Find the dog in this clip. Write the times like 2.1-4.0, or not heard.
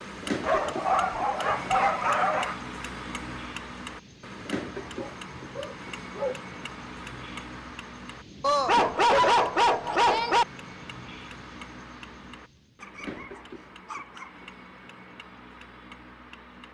0.4-2.5, 5.0-6.4, 8.4-10.4, 12.8-14.3.